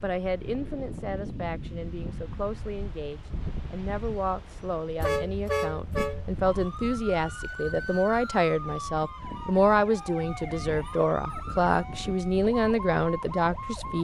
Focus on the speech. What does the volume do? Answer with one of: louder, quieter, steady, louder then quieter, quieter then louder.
louder.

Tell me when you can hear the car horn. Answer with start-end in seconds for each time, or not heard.
5.0-6.3.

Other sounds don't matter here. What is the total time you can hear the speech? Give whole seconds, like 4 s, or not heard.
14 s.